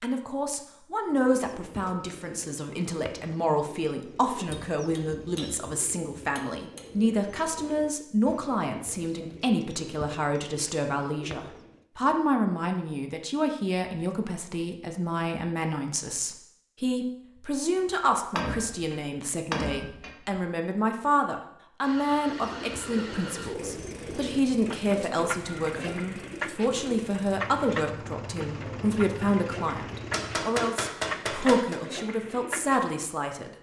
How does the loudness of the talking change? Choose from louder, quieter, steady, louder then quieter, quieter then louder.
steady.